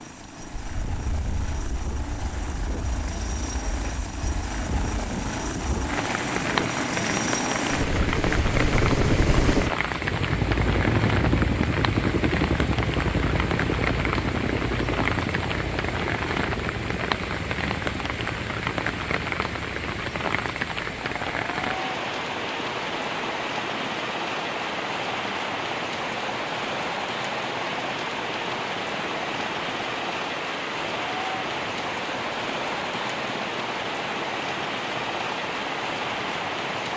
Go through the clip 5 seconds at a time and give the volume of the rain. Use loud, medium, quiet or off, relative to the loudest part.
quiet, loud, loud, loud, loud, loud, loud, loud.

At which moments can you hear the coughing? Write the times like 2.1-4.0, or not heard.
not heard.